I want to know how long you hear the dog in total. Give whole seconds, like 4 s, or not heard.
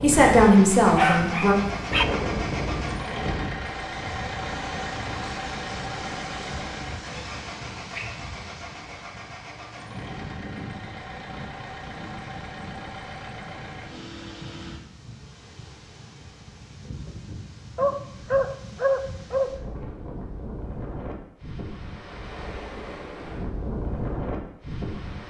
3 s.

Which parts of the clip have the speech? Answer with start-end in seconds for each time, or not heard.
0.0-1.6.